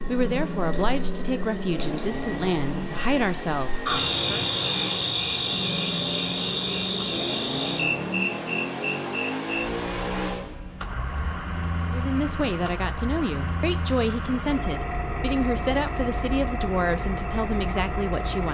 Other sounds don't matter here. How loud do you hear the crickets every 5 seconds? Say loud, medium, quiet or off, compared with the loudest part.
loud, loud, medium, off.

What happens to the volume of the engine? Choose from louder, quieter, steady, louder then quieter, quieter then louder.
steady.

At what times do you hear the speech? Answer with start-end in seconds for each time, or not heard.
0.1-4.5, 11.8-18.4.